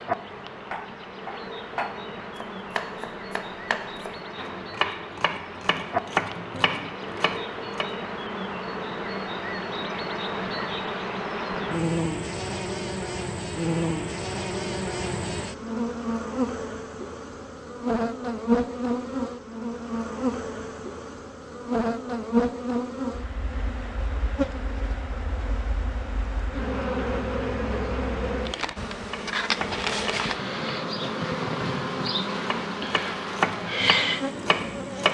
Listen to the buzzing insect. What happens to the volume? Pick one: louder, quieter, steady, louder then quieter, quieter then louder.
louder.